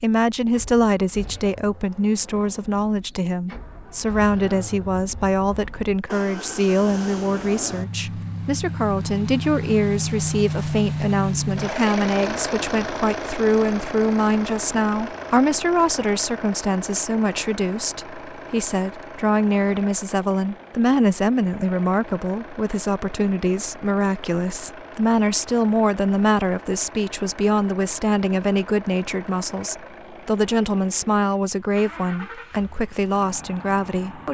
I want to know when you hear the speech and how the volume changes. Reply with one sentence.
The speech can be heard from 0.0 to 34.2 s, at a steady volume.